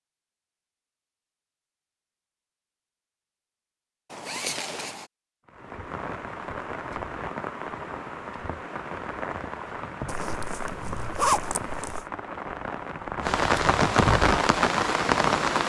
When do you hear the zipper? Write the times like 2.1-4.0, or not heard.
4.1-5.1, 10.1-12.1.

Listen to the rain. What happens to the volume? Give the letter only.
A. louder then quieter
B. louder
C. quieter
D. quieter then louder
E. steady
B.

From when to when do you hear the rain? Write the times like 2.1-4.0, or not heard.
5.5-15.6.